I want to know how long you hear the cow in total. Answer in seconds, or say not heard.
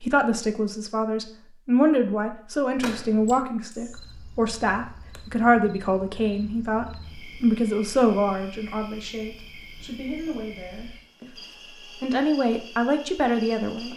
not heard.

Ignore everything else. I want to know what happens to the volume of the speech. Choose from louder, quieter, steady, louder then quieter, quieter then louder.
quieter then louder.